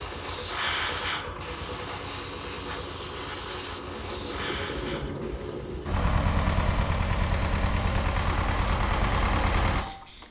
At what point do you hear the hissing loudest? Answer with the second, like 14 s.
1 s.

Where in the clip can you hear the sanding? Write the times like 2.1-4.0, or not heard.
not heard.